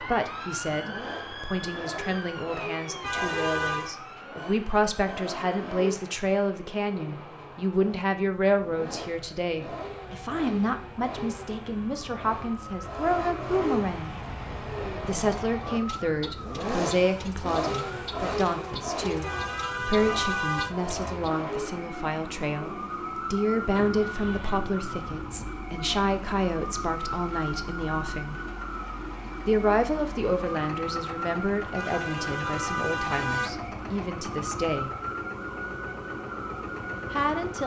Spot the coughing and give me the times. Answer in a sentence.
The coughing can't be heard in this clip.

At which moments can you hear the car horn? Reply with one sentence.
You can hear the car horn from 3.0 to 4.0 s, from 19.2 to 20.8 s and from 31.8 to 33.6 s.